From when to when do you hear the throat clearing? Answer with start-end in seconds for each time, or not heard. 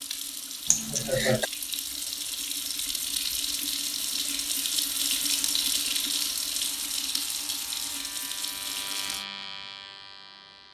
0.7-1.5.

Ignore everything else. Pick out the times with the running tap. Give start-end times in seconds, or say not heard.
0.0-9.2.